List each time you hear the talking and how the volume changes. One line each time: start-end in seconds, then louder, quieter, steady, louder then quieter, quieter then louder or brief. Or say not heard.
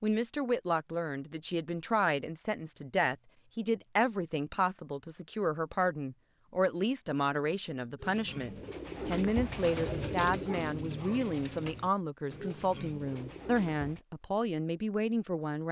0.0-15.6 steady.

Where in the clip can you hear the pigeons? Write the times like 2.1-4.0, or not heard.
8.0-14.0.